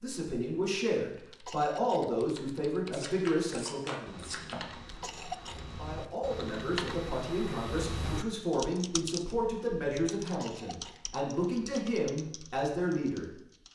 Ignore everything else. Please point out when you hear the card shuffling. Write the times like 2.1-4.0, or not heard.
2.9-4.6.